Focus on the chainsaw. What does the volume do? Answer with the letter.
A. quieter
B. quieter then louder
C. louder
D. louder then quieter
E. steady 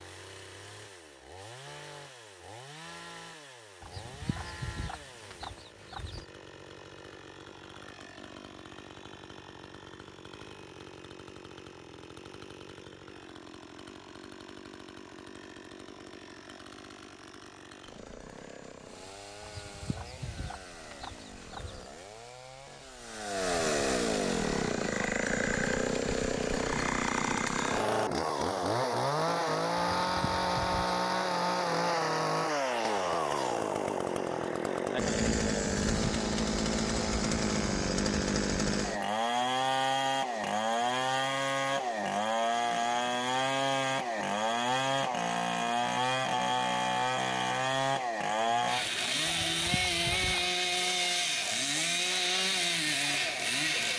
C.